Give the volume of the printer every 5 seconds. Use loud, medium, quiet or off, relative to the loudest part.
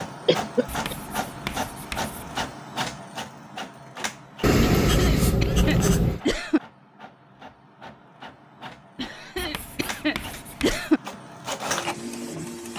loud, medium, loud.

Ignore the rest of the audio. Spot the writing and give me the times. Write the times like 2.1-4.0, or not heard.
0.7-2.5, 4.4-6.2, 9.3-10.8.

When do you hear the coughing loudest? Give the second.
11 s.